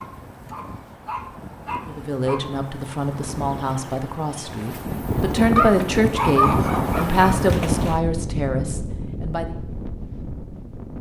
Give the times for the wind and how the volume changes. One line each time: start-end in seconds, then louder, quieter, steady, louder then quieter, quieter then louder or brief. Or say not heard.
0.0-10.9 louder then quieter.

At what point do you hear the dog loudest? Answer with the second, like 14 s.
6 s.